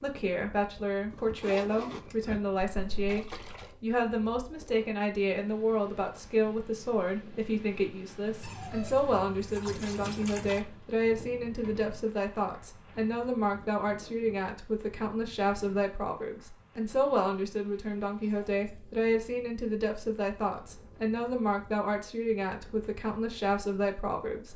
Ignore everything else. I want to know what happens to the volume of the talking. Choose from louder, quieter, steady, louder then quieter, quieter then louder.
steady.